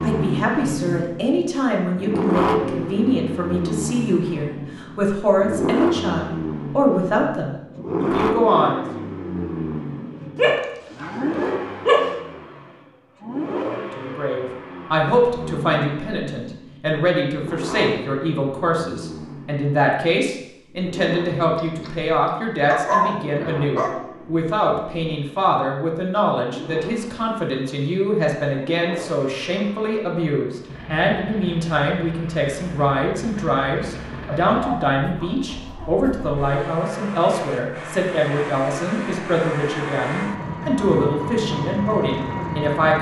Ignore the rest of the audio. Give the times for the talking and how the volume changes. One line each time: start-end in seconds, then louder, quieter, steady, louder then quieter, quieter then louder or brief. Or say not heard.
0.0-9.1 steady
13.8-42.9 steady.